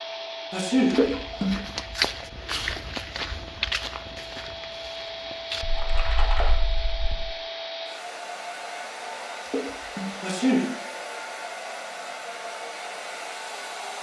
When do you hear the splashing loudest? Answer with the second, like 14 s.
1 s.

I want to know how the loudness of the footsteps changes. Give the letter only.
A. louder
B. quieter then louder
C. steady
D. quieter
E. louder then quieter
E.